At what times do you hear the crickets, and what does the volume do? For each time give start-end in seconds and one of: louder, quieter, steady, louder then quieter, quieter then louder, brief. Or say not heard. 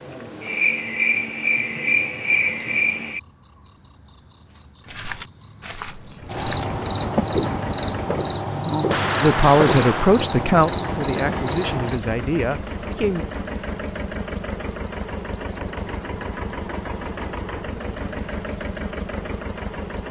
0.0-20.0 steady.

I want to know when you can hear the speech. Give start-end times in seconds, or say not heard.
9.2-13.2.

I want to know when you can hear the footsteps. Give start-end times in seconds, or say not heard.
4.8-10.3.